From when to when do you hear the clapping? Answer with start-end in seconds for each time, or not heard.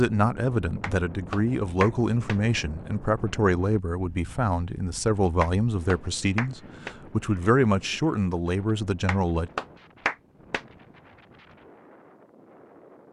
0.8-2.4, 5.4-7.0, 9.1-10.6.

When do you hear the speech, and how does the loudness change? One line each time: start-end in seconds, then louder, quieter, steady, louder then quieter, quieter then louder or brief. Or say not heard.
0.0-9.5 steady.